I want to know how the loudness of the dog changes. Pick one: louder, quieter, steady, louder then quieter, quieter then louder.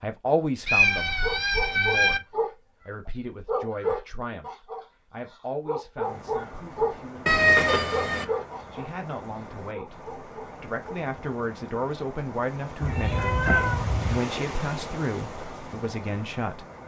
quieter.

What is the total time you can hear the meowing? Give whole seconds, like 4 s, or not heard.
4 s.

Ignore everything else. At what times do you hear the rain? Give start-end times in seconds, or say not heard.
6.0-16.8.